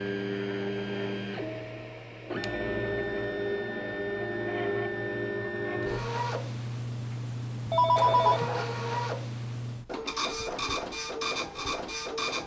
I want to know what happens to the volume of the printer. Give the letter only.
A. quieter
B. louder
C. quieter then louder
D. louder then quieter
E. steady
E.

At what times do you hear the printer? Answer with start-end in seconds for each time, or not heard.
0.0-12.4.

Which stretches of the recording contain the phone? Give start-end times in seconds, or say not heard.
7.7-8.4.